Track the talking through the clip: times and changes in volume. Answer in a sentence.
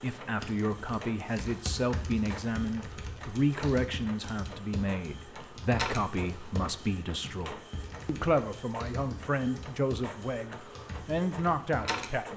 The talking can be heard from 0.0 to 12.3 s, at a steady volume.